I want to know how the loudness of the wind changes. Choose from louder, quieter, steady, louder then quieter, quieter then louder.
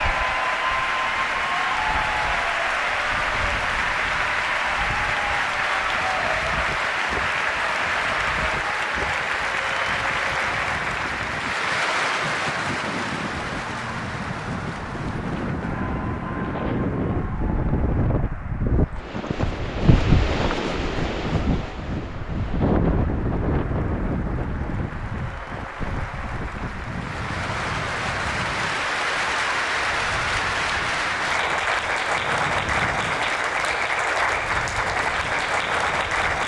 louder then quieter.